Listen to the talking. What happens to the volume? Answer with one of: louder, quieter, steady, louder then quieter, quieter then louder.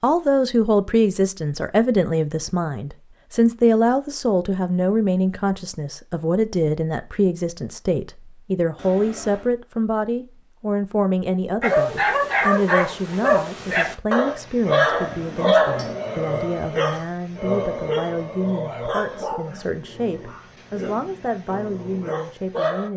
quieter.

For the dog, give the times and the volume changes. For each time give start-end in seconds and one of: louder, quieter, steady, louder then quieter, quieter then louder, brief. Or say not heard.
11.6-22.9 quieter.